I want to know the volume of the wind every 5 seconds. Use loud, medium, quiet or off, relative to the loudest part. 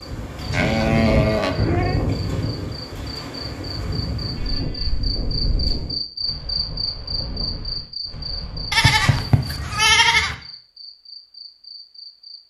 loud, medium, off.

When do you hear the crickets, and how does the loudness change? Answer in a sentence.
The crickets can be heard from 0.0 to 12.4 s, getting louder then quieter.